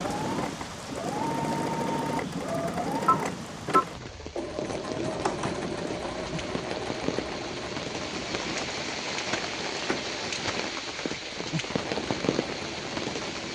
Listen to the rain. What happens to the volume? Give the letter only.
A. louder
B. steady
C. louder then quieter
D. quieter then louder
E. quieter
A.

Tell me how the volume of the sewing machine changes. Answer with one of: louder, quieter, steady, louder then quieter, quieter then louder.
quieter.